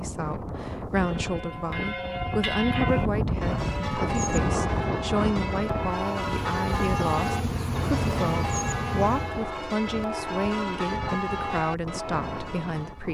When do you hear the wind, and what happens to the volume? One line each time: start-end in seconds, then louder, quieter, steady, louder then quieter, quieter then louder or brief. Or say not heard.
0.0-13.0 louder then quieter.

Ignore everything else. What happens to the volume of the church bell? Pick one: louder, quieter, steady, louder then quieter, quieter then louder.
steady.